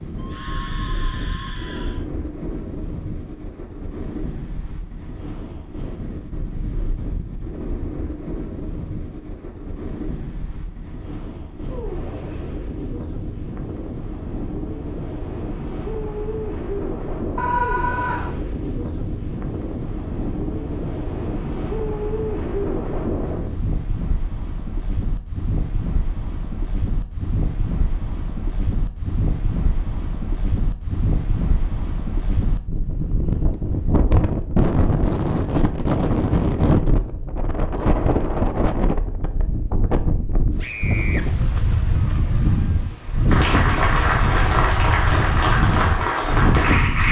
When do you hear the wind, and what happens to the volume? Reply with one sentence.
You can hear the wind from 0.0 to 47.0 s, getting louder.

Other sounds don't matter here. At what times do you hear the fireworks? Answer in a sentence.
You can't hear the fireworks here.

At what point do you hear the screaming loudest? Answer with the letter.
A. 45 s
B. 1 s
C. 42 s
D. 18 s
D.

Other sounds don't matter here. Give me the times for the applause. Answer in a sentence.
You can hear the applause from 43.3 to 47.0 s.